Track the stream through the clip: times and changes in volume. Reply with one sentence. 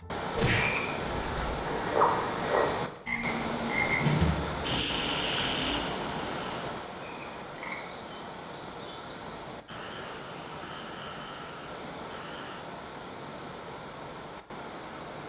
The stream can be heard from 0.0 to 15.2 s, getting quieter.